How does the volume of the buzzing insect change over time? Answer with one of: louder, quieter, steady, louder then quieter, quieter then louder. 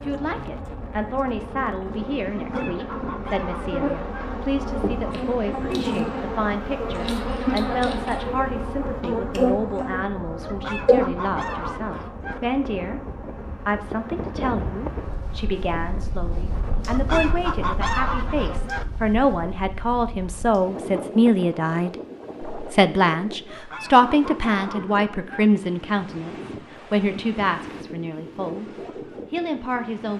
louder then quieter.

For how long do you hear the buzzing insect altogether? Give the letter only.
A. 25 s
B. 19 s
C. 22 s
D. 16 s
B.